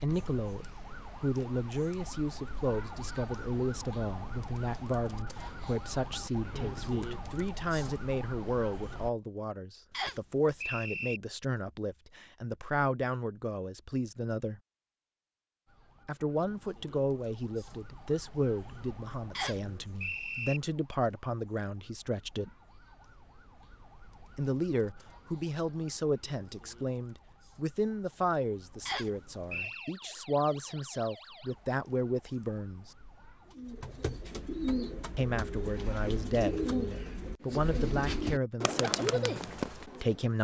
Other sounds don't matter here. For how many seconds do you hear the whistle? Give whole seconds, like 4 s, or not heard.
4 s.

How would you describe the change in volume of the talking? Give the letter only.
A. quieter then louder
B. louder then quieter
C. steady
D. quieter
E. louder
C.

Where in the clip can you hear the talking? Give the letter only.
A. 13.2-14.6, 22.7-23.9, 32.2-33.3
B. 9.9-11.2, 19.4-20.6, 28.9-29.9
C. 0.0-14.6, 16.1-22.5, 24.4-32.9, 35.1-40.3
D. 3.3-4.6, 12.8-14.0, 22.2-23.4
C.